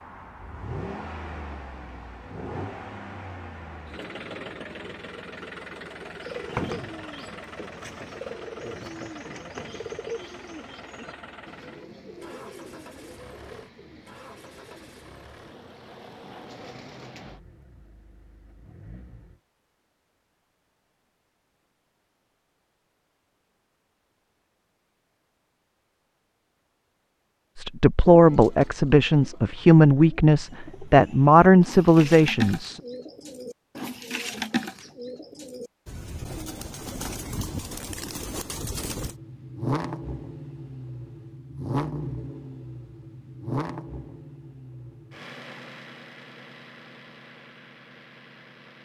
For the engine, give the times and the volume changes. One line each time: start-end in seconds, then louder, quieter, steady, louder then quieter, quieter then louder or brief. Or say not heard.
0.0-19.4 quieter
38.9-48.7 quieter.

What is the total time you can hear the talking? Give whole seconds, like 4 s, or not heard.
5 s.